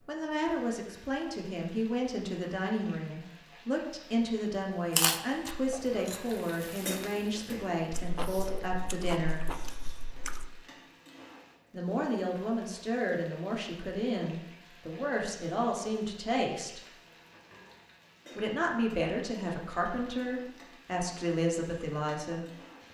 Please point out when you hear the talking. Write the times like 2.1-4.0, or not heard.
0.1-9.4, 11.7-16.8, 18.4-22.4.